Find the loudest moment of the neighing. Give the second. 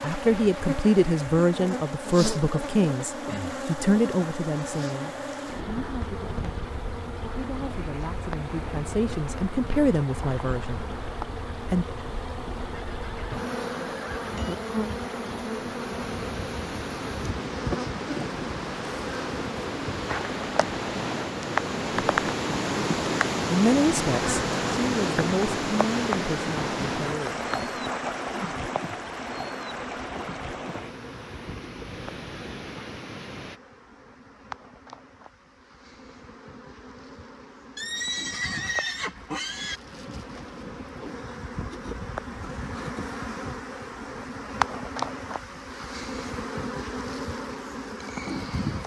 39 s.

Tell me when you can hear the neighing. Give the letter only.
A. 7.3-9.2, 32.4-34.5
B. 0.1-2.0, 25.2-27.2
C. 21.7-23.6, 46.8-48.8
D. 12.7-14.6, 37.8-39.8
D.